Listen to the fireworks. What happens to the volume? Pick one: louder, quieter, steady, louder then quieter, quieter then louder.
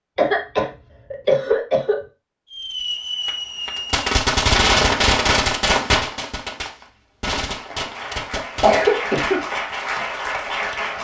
louder then quieter.